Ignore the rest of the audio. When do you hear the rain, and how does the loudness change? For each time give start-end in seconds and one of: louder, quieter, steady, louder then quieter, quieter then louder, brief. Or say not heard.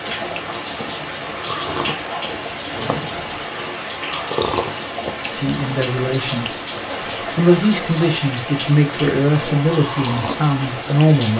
0.0-11.3 steady.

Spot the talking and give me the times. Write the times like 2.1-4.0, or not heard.
5.3-6.5, 7.3-11.3.